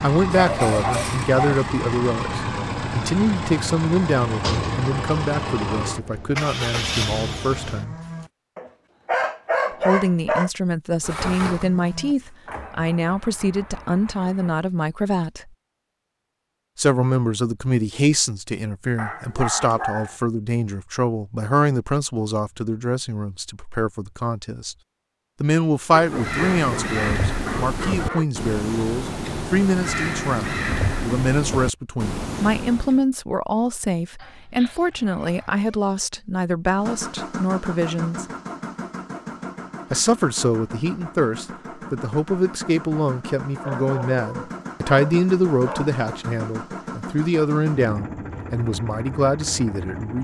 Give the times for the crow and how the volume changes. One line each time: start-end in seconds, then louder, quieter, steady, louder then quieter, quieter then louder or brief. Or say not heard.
25.9-33.0 steady.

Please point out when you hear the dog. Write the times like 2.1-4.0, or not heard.
0.3-1.6, 8.6-10.5, 18.9-20.1, 25.9-28.2, 34.1-35.8, 43.6-46.0.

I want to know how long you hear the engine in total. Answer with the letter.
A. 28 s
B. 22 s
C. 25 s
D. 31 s
C.